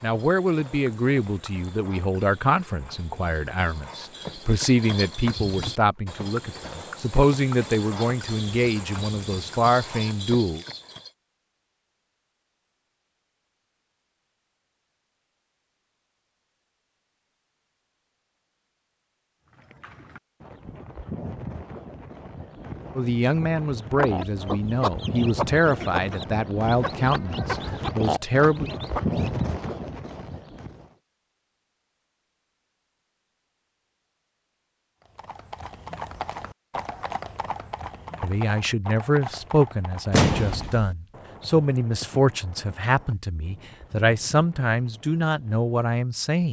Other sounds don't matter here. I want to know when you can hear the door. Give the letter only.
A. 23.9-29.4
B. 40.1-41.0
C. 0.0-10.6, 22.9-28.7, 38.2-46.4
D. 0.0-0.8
B.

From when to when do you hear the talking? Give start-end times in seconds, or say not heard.
0.0-10.6, 22.9-28.7, 38.2-46.4.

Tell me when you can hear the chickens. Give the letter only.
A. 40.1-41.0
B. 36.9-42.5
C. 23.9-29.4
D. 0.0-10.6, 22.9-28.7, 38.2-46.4
C.